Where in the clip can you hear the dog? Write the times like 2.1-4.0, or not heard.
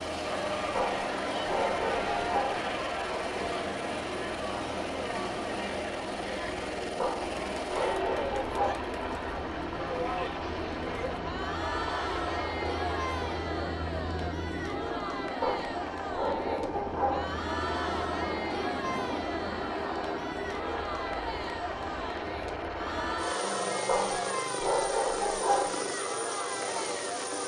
0.8-2.7, 7.0-8.8, 15.4-17.4, 23.9-25.9.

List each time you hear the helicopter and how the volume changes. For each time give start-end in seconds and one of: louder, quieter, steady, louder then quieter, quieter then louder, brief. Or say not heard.
0.0-27.4 steady.